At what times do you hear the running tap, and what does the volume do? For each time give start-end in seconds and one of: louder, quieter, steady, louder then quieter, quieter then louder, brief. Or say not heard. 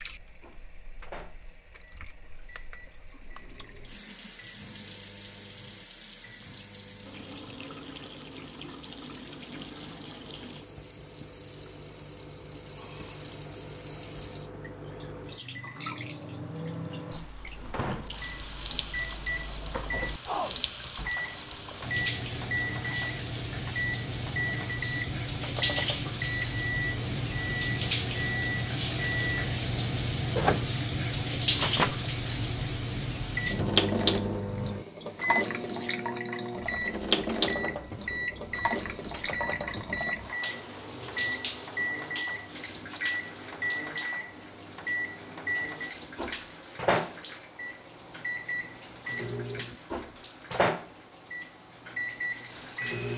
0.0-53.1 louder then quieter.